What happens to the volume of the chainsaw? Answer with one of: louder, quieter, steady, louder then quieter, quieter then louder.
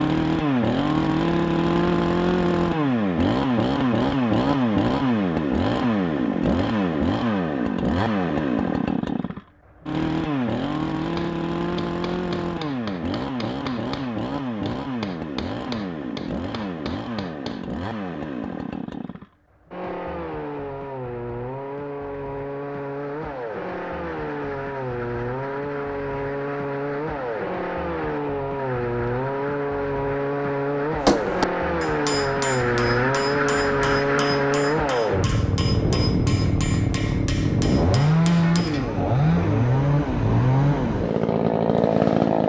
quieter then louder.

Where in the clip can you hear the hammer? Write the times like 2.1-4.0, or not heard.
10.9-17.7, 31.1-38.9.